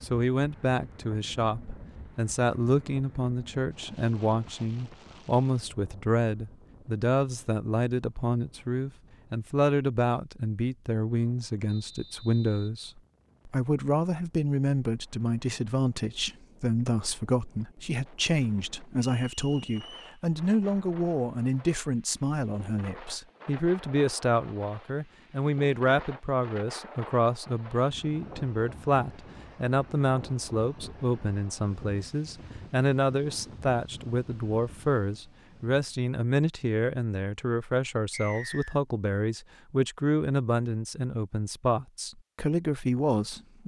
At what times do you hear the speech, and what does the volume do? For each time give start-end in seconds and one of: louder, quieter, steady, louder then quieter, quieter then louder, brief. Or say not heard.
0.0-43.6 steady.